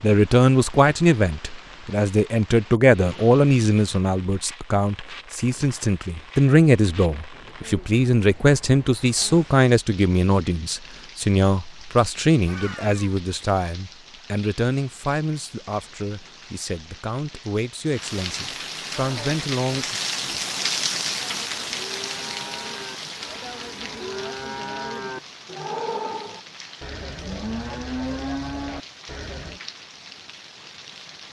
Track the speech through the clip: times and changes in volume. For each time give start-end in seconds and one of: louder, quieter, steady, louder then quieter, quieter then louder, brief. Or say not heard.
0.0-19.9 quieter.